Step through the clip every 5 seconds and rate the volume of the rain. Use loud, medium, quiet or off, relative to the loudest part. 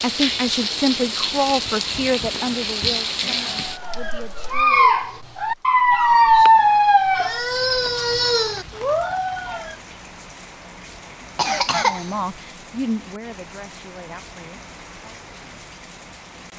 loud, quiet, quiet, quiet.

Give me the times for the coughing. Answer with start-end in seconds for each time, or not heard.
11.3-12.2.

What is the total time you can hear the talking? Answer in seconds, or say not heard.
8 s.